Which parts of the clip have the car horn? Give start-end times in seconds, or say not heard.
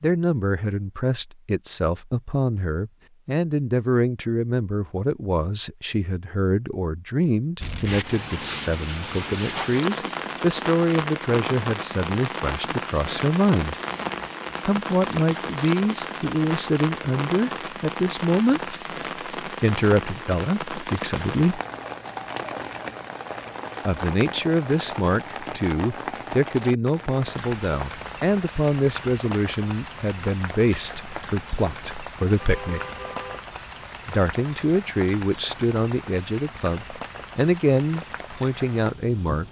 32.4-33.5.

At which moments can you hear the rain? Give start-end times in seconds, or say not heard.
7.5-39.4.